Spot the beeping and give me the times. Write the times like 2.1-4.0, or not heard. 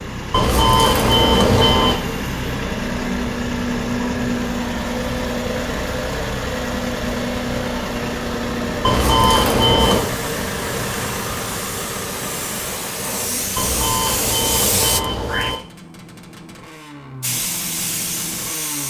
0.3-2.0, 8.8-10.1, 13.6-15.6.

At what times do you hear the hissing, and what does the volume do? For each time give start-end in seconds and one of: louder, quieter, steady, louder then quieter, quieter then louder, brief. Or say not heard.
9.8-15.6 louder
17.2-18.8 brief.